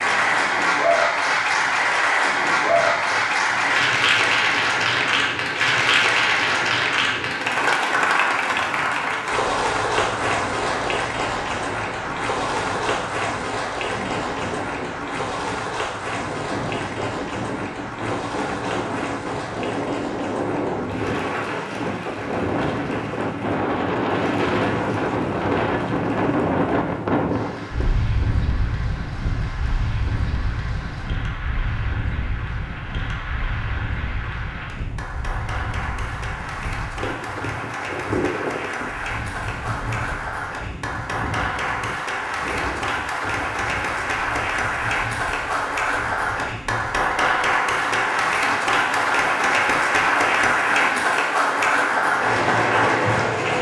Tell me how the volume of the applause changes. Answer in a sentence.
The loudness of the applause goes down, then up.